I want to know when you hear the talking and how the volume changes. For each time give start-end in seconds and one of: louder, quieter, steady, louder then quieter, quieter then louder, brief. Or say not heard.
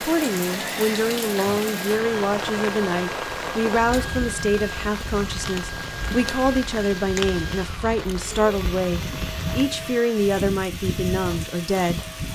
0.0-12.1 steady.